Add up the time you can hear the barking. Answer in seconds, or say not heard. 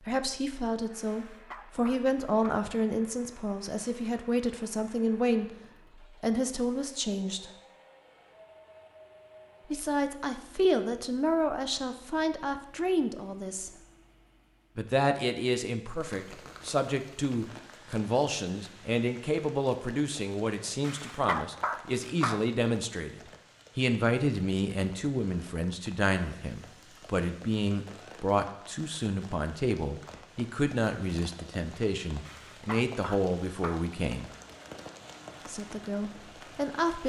5 s.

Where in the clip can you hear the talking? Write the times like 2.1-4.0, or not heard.
0.1-7.5, 9.7-13.7, 14.8-34.3, 35.5-37.0.